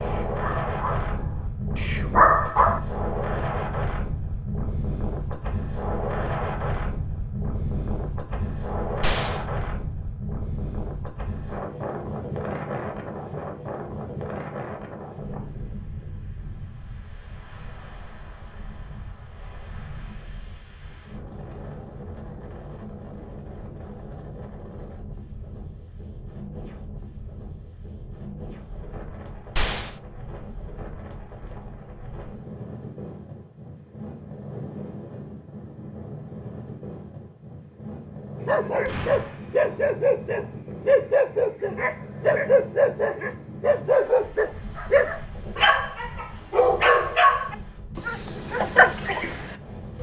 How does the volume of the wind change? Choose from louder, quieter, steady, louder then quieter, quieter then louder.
quieter.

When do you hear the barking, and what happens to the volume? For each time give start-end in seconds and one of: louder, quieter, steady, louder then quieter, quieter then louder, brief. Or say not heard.
0.0-2.8 brief
38.5-49.9 steady.